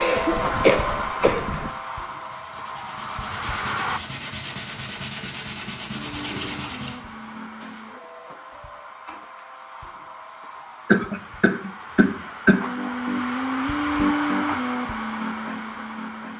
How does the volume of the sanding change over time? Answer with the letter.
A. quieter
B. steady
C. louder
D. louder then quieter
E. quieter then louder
C.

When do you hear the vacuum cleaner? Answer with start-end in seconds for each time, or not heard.
0.0-4.0, 5.9-16.3.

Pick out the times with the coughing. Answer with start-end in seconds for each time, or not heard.
0.0-1.7, 10.8-12.7.